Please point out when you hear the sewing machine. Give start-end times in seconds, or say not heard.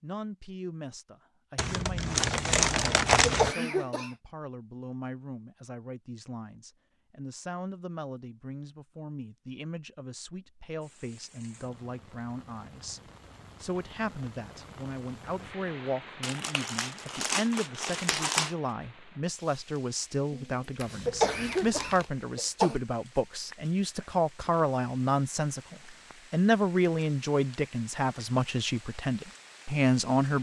not heard.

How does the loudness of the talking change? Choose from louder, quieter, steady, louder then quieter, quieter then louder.
louder.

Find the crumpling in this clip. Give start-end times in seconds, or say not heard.
1.6-3.5, 16.2-18.6, 20.8-22.1.